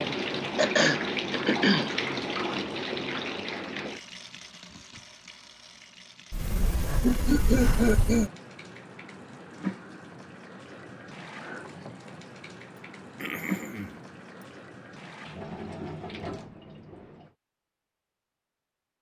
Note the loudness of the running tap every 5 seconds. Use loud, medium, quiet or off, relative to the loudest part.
loud, medium, medium, medium.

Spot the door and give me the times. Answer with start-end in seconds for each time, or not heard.
6.3-8.3.